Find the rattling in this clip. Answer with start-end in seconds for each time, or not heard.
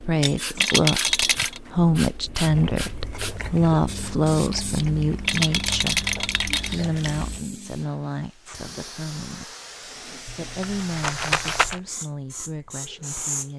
0.6-1.6, 5.2-6.8, 10.2-11.8.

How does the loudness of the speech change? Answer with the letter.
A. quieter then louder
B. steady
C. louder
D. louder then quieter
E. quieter
E.